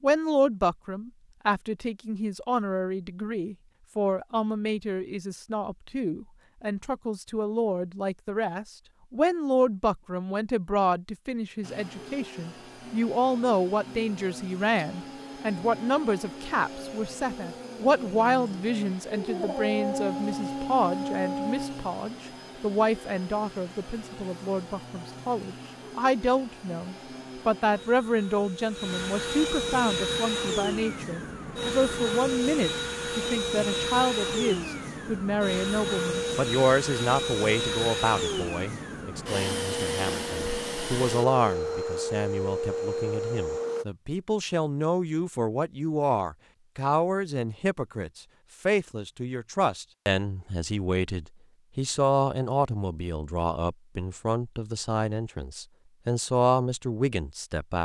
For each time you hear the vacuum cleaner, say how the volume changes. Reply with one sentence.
The vacuum cleaner can be heard from 11.6 to 43.9 s, getting louder.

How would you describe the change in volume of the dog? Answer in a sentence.
The volume of the dog goes up.